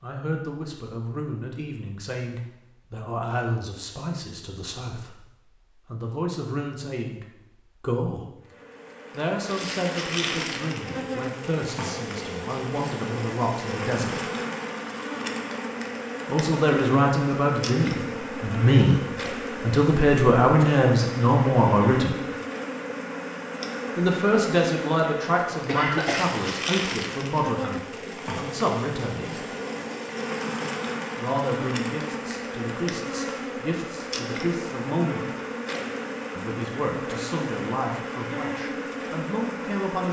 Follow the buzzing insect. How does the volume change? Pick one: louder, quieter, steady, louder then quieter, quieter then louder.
steady.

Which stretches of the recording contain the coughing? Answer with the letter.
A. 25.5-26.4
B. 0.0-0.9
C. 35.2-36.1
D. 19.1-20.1
A.